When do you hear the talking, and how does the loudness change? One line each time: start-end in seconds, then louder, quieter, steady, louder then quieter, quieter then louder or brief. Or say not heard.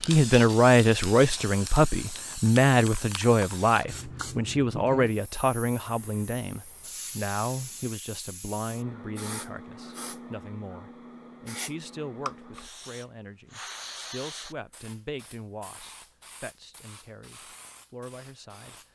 0.0-18.8 quieter.